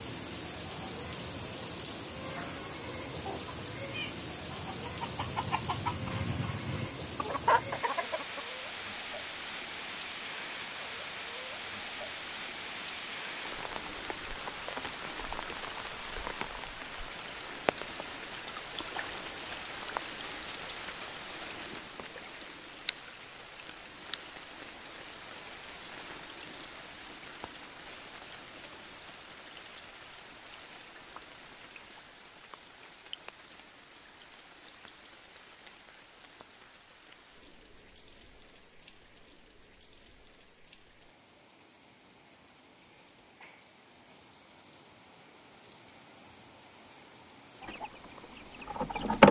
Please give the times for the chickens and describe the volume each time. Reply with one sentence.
The chickens can be heard from 2.2 to 8.4 s, getting louder; and briefly from 47.6 to 49.2 s.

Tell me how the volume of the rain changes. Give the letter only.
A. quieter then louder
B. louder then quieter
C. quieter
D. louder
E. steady
C.